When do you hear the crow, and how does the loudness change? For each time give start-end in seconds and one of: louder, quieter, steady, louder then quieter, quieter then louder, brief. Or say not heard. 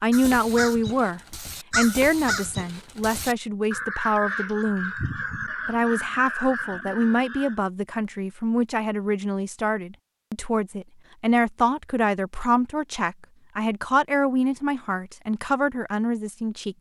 0.1-7.6 steady.